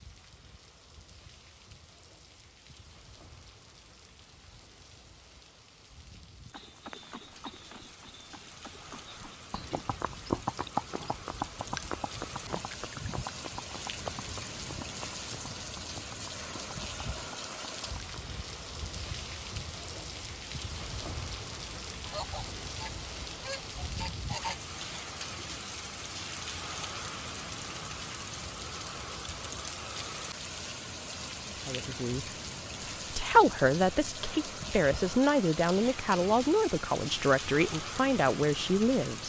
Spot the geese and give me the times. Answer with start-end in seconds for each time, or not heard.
21.9-24.6.